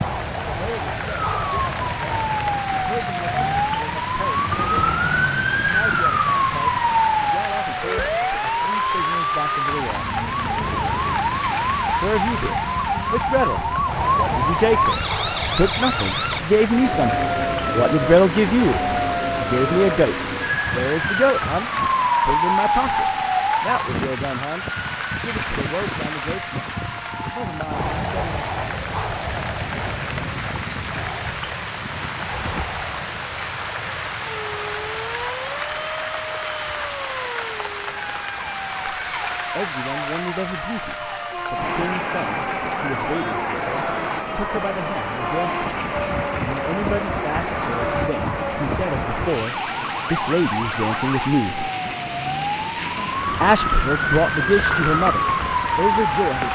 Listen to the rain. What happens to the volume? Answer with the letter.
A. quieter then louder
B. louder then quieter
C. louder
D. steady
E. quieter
D.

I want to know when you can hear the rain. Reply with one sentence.
You can hear the rain from 0.0 to 56.5 s.